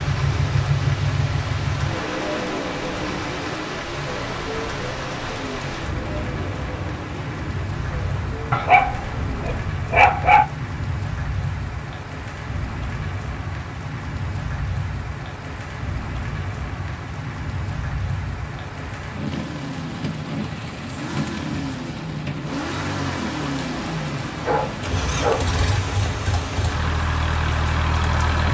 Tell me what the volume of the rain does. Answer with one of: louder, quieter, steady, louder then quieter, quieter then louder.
steady.